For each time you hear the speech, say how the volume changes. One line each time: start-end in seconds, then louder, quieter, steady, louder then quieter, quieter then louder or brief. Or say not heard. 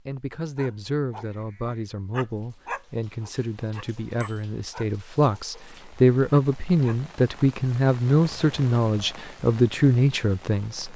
0.1-10.9 louder.